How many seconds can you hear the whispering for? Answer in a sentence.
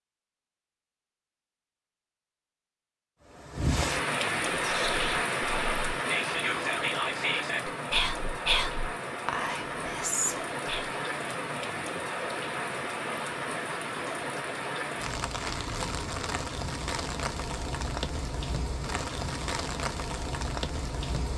You can hear the whispering for 6 seconds altogether.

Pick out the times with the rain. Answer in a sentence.
You can hear the rain from 3.2 to 21.3 s.